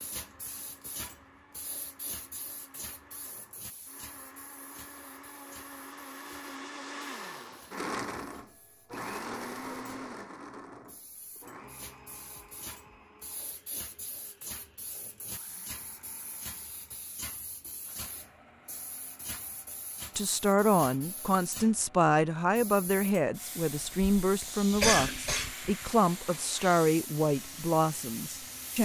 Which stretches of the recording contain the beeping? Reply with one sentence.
The beeping can't be heard in this clip.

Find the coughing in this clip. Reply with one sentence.
The coughing can be heard from 23.8 to 25.7 s.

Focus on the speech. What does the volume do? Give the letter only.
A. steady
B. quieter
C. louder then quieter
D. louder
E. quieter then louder
A.